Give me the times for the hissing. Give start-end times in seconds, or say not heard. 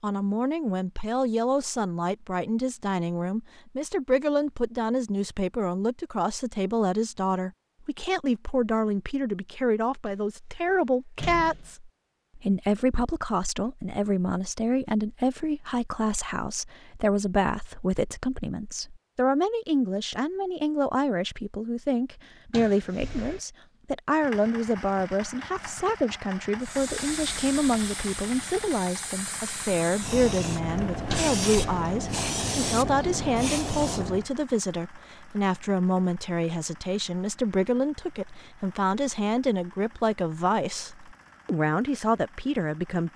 26.6-34.2.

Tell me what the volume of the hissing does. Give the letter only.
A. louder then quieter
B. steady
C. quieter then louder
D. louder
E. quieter
D.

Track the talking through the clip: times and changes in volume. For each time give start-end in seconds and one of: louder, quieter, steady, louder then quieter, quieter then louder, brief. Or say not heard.
0.0-43.1 steady.